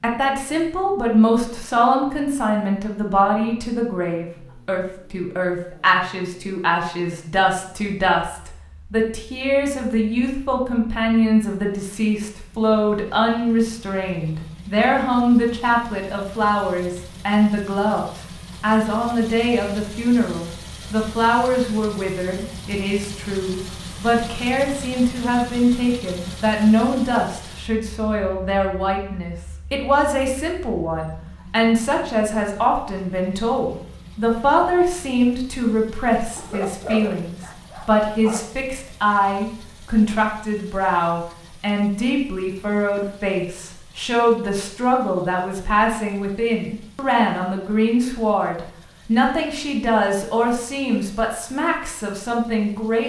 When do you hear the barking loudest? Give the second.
37 s.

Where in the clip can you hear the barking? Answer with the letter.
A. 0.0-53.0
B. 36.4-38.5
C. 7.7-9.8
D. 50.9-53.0
B.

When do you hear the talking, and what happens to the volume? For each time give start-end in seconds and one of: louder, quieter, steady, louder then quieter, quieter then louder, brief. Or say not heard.
0.0-53.0 steady.